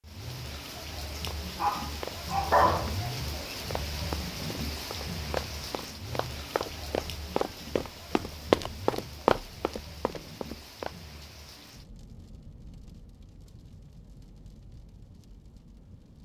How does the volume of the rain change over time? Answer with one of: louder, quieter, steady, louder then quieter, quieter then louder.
quieter.